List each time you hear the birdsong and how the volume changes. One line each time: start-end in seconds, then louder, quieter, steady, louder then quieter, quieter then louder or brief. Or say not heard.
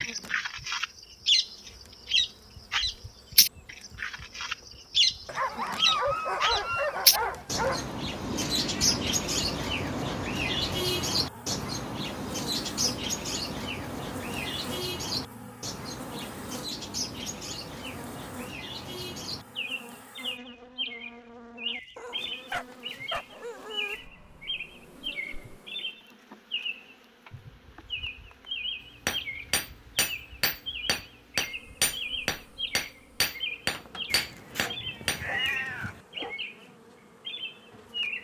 0.0-36.6 quieter
37.2-38.1 brief.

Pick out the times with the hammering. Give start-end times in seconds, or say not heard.
29.1-35.2.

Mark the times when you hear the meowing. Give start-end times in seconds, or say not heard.
8.2-9.1, 34.1-36.0.